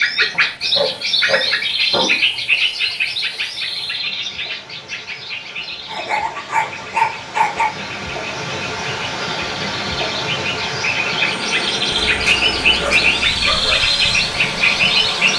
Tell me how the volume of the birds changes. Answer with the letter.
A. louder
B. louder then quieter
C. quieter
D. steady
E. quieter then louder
E.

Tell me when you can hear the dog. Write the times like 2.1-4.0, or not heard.
0.3-2.5, 5.8-7.7, 11.9-13.8.